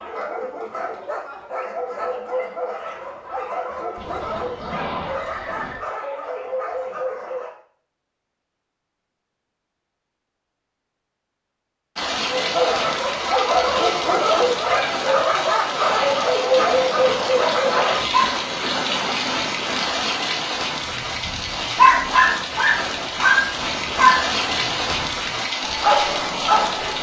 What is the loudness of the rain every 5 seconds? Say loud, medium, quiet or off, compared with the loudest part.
off, off, loud, loud, loud, loud.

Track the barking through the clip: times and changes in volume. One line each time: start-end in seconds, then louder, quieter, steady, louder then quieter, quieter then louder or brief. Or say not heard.
0.0-7.5 steady
12.3-18.4 steady
20.8-26.9 quieter then louder.